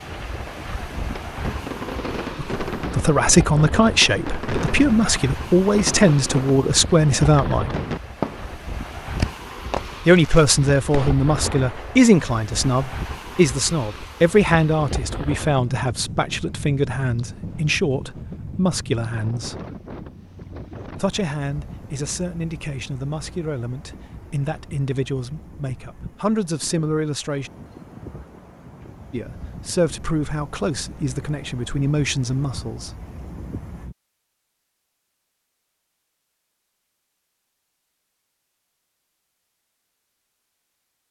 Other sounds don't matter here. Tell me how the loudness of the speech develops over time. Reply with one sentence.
The volume of the speech goes down.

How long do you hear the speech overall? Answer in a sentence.
You can hear the speech for 25 seconds altogether.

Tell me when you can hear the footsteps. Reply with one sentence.
You can't hear the footsteps here.